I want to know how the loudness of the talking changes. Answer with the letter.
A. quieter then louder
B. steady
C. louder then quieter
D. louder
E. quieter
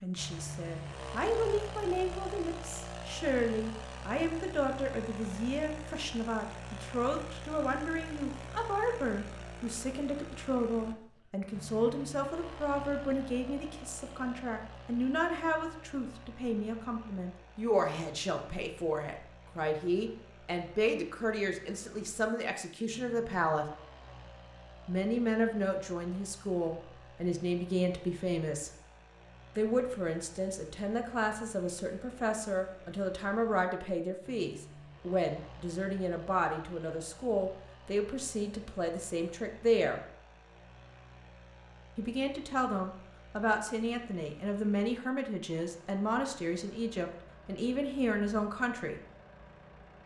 B.